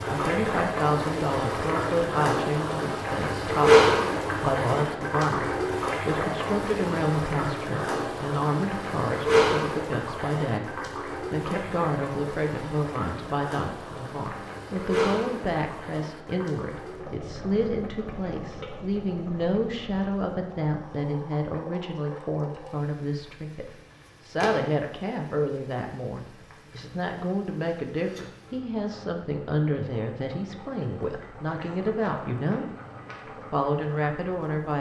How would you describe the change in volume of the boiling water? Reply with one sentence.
The volume of the boiling water goes down.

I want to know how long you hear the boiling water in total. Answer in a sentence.
The boiling water can be heard for 35 seconds in total.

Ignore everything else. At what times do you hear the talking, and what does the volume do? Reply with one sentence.
You can hear the talking from 0.0 to 32.6 s, at a steady volume; and briefly from 33.4 to 34.7 s.